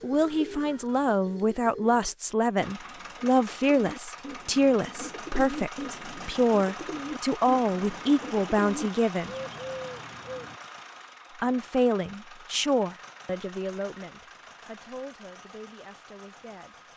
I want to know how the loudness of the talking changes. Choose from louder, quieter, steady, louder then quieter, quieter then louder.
quieter.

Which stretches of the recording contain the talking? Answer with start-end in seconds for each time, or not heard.
0.0-9.3, 11.4-16.9.